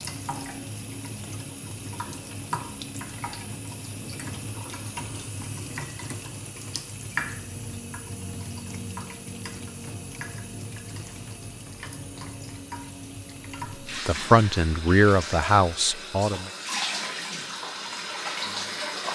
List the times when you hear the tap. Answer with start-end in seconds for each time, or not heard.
0.0-19.1.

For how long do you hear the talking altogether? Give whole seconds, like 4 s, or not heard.
3 s.